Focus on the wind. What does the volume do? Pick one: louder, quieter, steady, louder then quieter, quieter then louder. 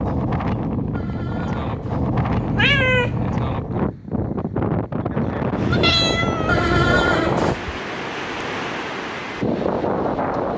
steady.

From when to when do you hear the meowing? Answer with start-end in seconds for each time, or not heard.
2.2-3.5, 5.5-7.0.